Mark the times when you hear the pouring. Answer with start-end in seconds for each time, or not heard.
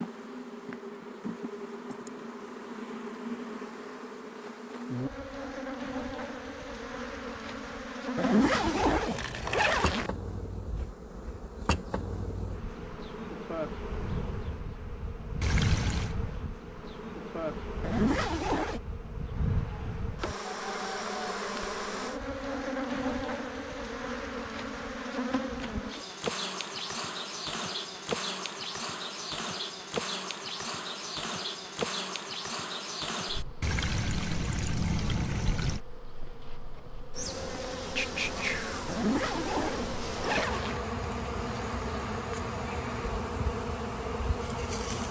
9.1-9.8, 15.4-16.1, 33.6-35.8.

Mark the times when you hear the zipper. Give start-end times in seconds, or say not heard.
8.2-10.1, 17.8-18.8, 38.9-40.8.